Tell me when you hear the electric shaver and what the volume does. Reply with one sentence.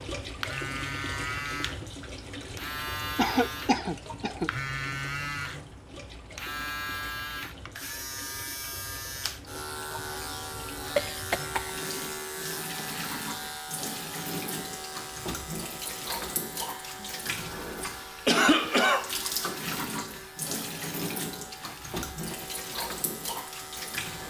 You can hear the electric shaver from 0.2 to 24.2 s, getting quieter.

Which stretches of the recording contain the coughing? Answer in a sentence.
You can hear the coughing from 3.1 to 4.5 s, from 10.9 to 11.7 s and from 18.2 to 19.1 s.